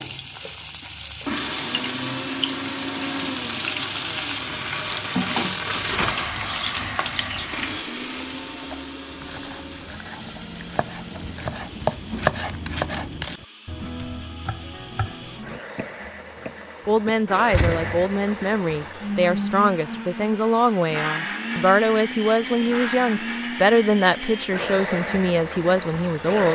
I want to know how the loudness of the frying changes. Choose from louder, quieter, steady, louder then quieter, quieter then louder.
louder then quieter.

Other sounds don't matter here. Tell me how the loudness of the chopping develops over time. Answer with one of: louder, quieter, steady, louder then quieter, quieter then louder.
louder then quieter.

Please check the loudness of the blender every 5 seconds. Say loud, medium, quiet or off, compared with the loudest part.
loud, loud, quiet, loud, loud, loud.